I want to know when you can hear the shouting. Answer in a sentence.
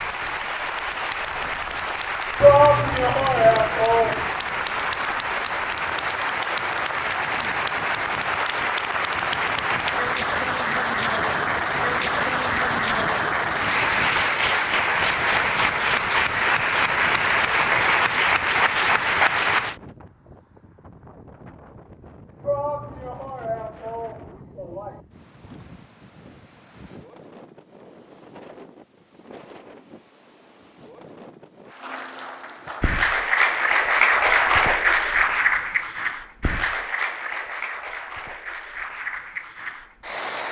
You can hear the shouting from 2.4 to 4.3 s and from 22.4 to 25.0 s.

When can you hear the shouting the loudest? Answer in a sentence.
The volume of the shouting peaks at 3 seconds.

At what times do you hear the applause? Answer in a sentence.
You can hear the applause from 0.0 to 19.8 s and from 31.6 to 40.4 s.